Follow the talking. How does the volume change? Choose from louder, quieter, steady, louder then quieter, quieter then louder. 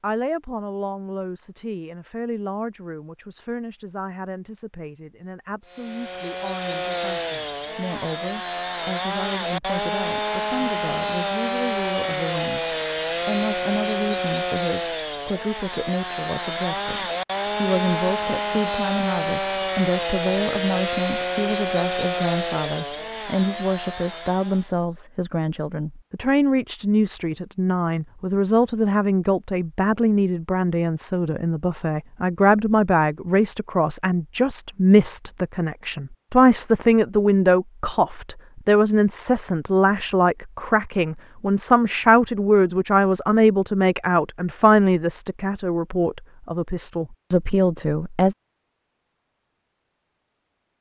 louder.